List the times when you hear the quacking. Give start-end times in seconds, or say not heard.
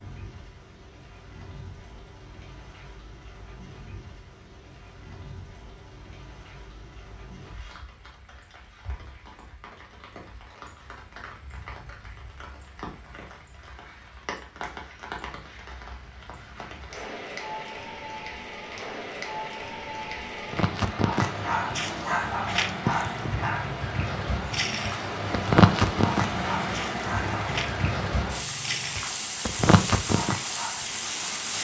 not heard.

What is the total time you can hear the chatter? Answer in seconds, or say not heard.
not heard.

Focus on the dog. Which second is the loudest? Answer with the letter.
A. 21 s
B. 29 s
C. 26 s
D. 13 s
C.